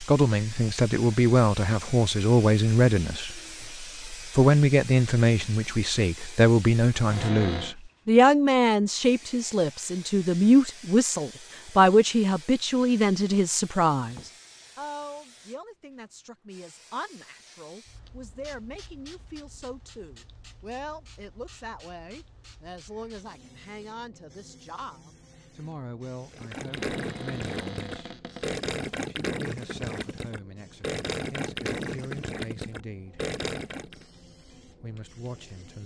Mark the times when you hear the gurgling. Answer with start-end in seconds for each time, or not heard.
26.3-34.0.